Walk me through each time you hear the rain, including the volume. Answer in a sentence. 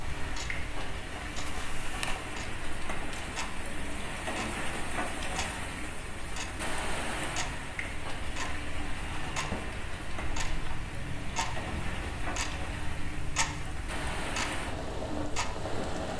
The rain can be heard from 0.0 to 16.1 s, at a steady volume.